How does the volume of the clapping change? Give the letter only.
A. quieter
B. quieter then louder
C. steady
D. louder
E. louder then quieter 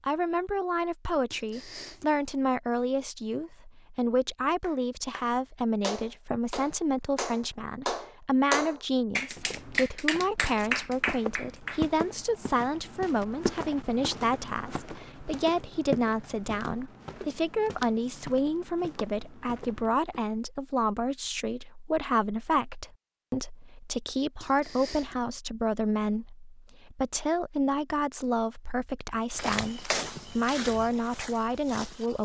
D.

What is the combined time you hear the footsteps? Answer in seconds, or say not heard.
14 s.